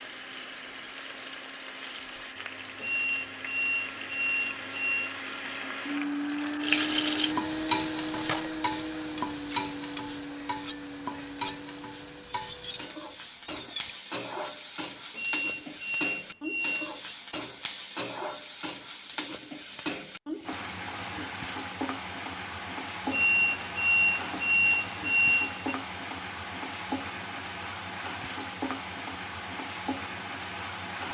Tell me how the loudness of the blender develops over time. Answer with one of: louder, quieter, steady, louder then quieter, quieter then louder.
louder then quieter.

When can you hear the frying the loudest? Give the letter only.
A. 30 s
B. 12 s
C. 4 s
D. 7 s
D.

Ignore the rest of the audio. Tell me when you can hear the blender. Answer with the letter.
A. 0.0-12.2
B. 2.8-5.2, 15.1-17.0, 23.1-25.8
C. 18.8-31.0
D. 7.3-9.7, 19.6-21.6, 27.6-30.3
A.